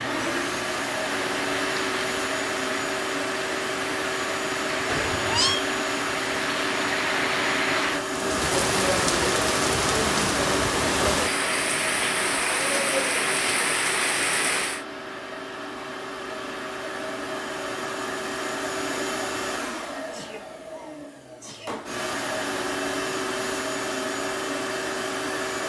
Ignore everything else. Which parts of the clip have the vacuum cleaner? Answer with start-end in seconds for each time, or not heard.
0.0-25.6.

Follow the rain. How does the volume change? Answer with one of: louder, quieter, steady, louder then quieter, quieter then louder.
louder.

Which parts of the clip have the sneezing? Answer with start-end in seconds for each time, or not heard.
20.1-21.8.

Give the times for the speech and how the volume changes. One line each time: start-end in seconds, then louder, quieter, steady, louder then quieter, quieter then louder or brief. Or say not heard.
not heard.